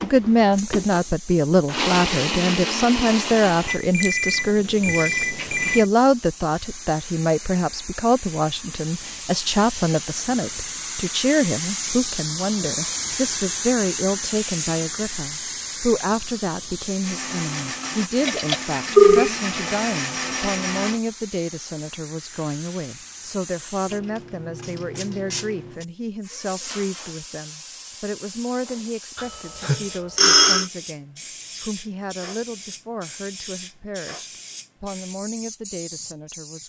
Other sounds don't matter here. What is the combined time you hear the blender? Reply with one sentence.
The blender can be heard for 8 seconds in total.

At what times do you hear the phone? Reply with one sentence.
The phone can be heard from 3.6 to 5.8 s, from 18.2 to 19.3 s and from 29.1 to 30.6 s.